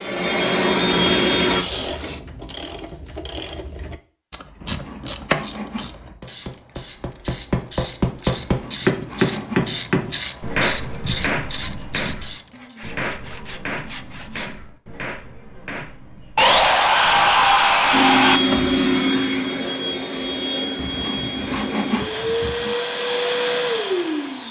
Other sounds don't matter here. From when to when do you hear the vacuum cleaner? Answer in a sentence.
You can hear the vacuum cleaner from 0.0 to 1.6 s and from 17.9 to 24.4 s.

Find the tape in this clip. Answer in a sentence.
You can hear the tape from 1.4 to 3.2 s.